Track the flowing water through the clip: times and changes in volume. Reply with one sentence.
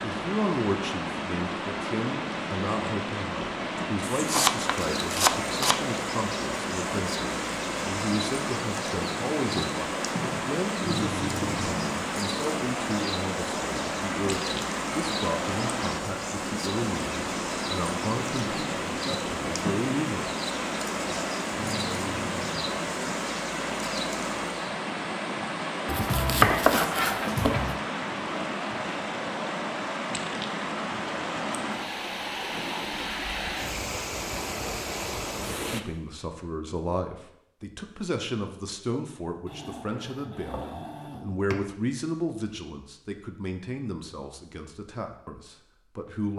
You can hear the flowing water from 0.0 to 35.8 s, at a steady volume.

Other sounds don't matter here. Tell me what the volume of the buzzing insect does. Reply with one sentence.
The loudness of the buzzing insect stays about the same.